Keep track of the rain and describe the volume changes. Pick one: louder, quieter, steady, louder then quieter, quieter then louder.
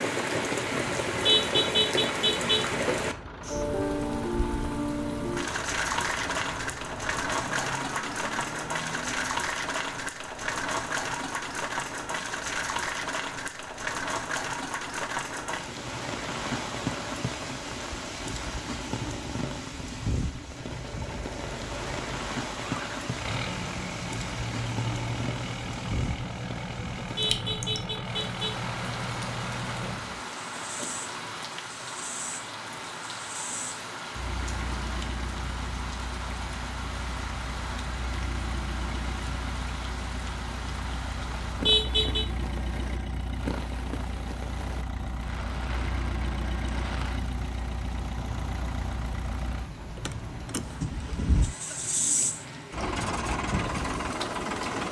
quieter.